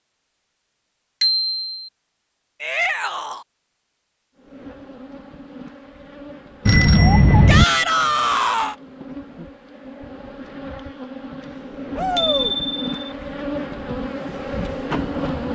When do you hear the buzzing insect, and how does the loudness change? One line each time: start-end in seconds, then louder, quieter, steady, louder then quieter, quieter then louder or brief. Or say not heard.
4.3-15.4 louder.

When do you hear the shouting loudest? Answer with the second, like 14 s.
8 s.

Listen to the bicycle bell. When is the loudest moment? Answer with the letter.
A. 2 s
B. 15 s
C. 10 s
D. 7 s
D.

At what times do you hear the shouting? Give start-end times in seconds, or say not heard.
2.6-3.5, 7.5-8.8, 11.9-12.6.